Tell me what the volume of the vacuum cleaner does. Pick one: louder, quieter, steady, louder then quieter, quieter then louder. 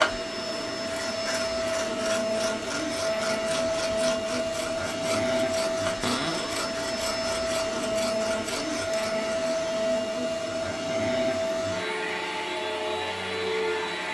steady.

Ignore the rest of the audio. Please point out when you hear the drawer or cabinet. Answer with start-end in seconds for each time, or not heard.
6.0-6.7.